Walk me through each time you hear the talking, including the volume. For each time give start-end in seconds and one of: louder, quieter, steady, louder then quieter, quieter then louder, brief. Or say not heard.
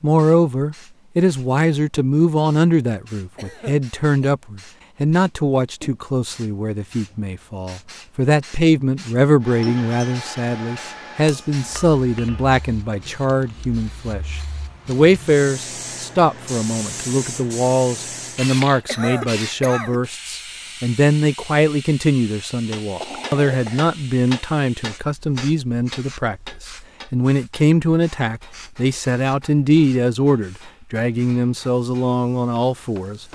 0.0-33.2 steady.